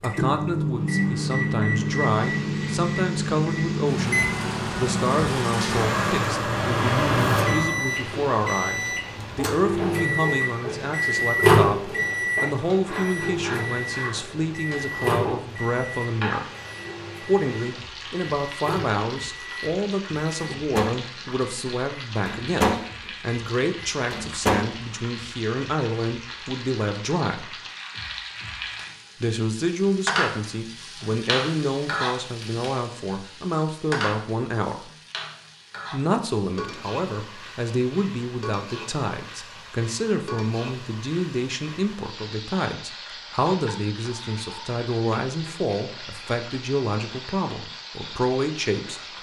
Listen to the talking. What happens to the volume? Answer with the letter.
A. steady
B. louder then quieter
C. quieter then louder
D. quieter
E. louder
A.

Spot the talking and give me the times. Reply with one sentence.
The talking can be heard from 0.0 to 16.5 s, from 17.2 to 27.6 s, from 29.2 to 34.9 s and from 35.9 to 49.0 s.